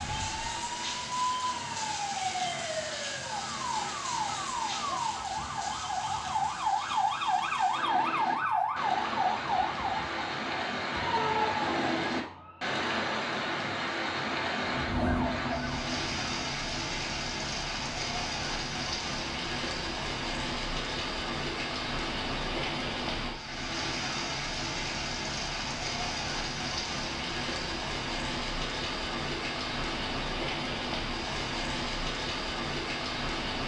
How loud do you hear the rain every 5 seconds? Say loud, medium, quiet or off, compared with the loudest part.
medium, medium, loud, loud, loud, loud, loud.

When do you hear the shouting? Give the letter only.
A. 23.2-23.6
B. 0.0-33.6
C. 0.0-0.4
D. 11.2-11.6
D.